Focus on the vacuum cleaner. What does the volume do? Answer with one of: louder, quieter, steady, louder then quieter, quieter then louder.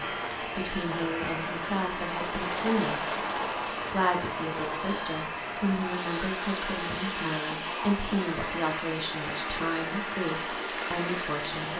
steady.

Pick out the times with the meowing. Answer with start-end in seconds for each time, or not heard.
not heard.